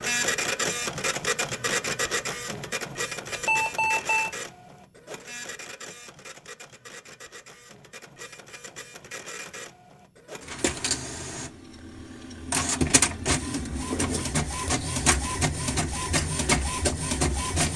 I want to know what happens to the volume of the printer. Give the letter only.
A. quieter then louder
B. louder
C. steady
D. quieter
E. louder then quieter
A.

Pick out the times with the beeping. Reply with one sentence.
The beeping can be heard from 3.3 to 4.3 s.